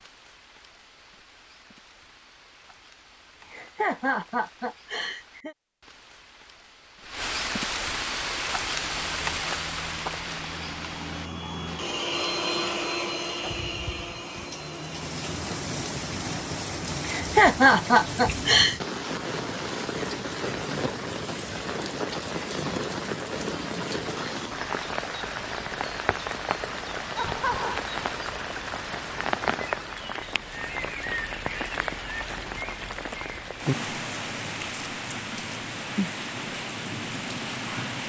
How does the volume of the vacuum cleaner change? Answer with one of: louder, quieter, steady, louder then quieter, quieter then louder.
louder then quieter.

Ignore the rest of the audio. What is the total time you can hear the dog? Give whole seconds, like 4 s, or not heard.
not heard.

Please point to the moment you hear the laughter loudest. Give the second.
18 s.